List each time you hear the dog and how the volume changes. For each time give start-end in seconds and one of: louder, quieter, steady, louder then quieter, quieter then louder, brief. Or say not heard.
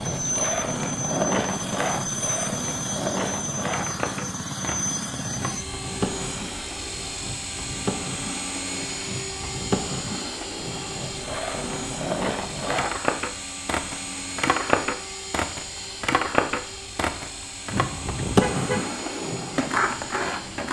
not heard.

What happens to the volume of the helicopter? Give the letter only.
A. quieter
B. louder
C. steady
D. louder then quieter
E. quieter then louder
A.